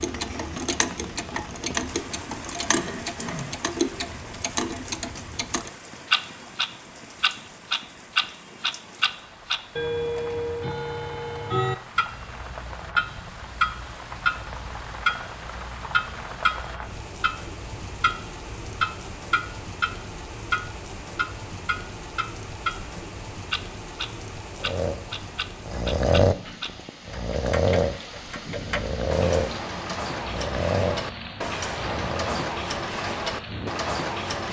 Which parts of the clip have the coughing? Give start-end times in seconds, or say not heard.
2.7-3.5.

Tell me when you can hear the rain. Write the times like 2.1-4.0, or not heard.
0.0-34.4.